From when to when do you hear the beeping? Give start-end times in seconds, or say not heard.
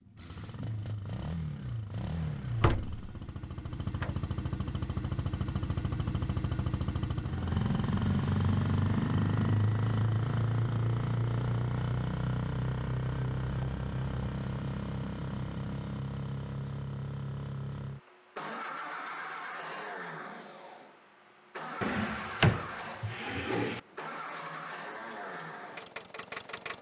not heard.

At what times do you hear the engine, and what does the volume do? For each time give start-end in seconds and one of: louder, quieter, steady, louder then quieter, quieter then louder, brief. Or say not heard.
0.0-26.7 louder then quieter.